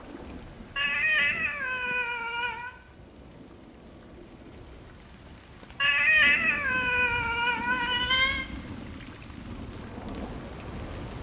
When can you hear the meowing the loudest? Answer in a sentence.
The volume of the meowing peaks at 6 seconds.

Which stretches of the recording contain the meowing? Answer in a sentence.
You can hear the meowing from 0.8 to 2.8 s and from 5.8 to 8.4 s.